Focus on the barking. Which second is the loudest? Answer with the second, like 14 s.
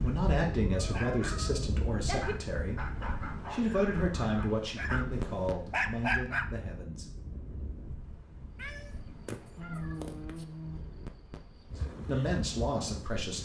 6 s.